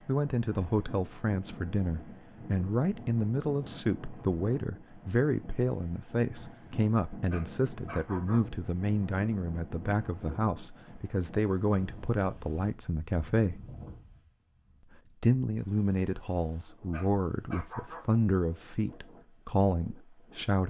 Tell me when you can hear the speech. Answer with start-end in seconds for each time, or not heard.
0.1-13.6, 15.2-20.6.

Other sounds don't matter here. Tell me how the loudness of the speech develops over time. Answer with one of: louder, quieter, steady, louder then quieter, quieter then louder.
steady.